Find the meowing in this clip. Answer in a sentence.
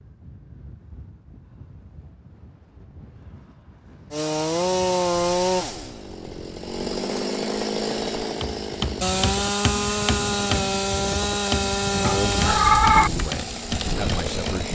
The meowing can be heard from 12.1 to 13.1 s.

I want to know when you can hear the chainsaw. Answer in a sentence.
You can hear the chainsaw from 4.1 to 14.6 s.